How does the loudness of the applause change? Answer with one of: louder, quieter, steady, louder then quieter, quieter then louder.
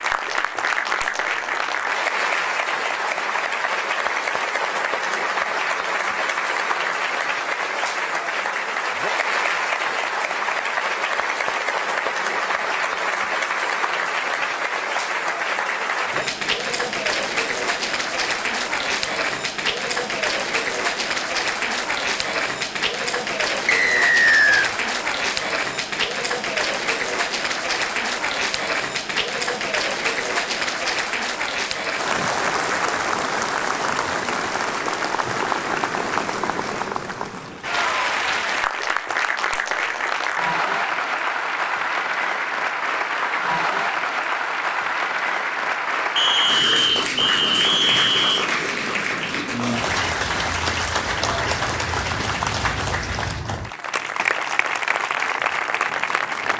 steady.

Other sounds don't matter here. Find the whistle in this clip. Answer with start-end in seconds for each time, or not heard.
23.6-24.7, 46.1-48.5.